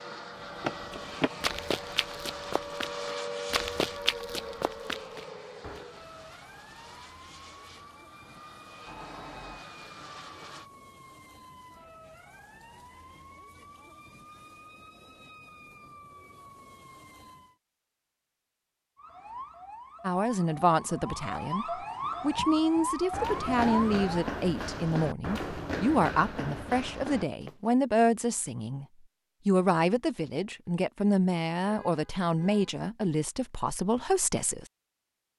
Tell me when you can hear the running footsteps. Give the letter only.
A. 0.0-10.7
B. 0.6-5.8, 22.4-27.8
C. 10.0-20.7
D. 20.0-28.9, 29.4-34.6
B.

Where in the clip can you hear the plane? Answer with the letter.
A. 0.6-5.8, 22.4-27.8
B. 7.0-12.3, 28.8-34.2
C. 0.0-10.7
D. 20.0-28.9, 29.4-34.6
C.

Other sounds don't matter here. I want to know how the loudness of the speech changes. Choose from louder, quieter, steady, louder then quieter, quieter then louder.
steady.